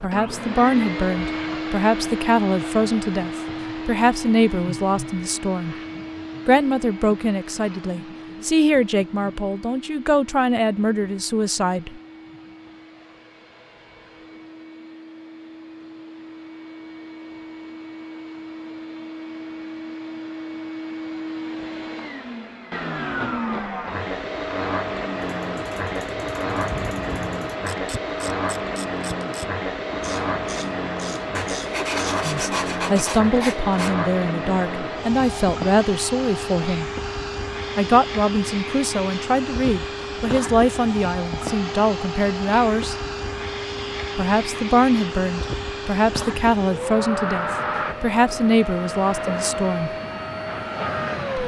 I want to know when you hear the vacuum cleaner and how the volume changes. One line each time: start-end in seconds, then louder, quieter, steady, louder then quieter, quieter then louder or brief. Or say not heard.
0.0-51.4 quieter then louder.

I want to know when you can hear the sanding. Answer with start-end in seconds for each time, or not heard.
31.4-34.0.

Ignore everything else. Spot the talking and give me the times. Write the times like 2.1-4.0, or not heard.
0.0-5.8, 6.5-12.0, 32.2-36.9, 37.8-43.0, 44.1-49.9.